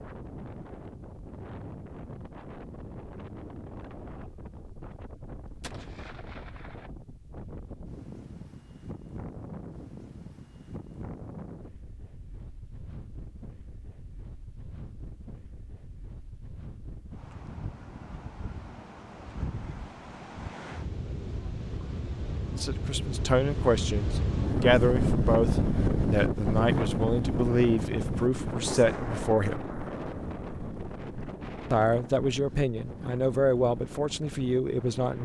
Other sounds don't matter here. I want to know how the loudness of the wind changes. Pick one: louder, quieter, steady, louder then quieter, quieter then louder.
louder then quieter.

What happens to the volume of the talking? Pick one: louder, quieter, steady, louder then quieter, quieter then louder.
steady.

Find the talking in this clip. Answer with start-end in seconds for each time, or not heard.
22.6-29.6, 31.7-35.2.